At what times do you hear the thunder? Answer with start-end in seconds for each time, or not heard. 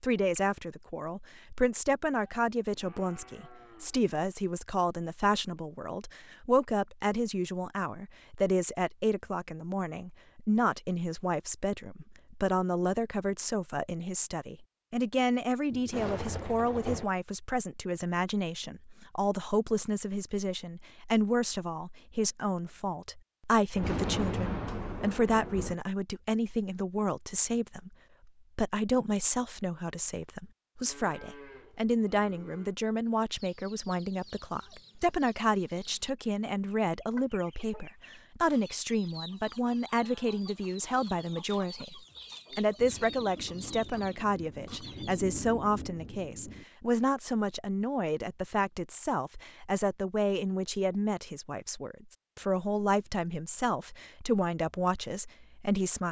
15.7-17.1, 23.8-25.8, 42.8-46.6.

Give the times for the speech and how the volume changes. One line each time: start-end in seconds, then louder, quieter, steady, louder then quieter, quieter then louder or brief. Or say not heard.
0.0-56.0 steady.